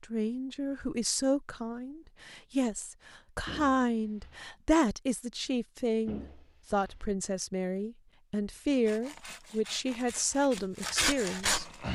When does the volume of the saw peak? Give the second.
11 s.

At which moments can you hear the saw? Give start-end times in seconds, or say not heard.
8.7-11.8.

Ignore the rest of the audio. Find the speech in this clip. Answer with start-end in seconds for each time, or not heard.
0.0-11.7.